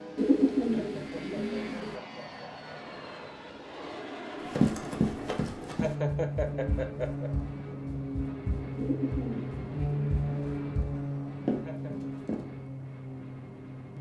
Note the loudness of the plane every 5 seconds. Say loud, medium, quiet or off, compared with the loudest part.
medium, loud, loud.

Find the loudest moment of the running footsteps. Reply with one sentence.
The volume of the running footsteps peaks at 5 seconds.